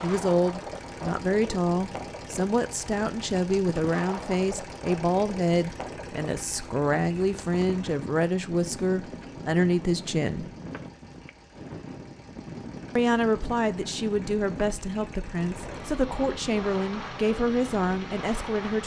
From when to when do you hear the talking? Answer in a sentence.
The talking can be heard from 0.0 to 10.4 s and from 12.9 to 18.8 s.